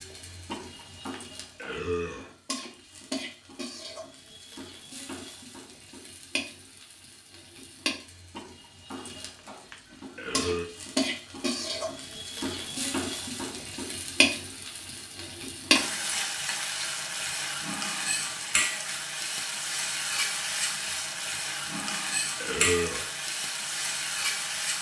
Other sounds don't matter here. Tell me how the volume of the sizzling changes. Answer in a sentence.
The volume of the sizzling goes up.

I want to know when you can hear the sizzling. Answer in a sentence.
You can hear the sizzling from 0.0 to 24.7 s.